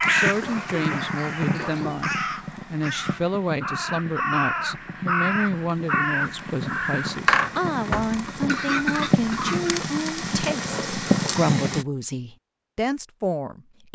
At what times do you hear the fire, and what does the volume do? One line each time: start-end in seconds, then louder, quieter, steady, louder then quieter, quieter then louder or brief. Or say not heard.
0.0-11.8 quieter then louder.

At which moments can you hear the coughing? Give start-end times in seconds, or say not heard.
0.4-1.9, 7.2-9.8.